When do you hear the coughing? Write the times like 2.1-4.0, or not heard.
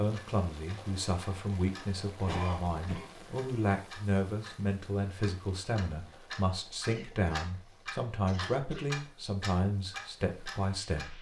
2.2-3.1, 6.9-7.5, 8.2-8.8.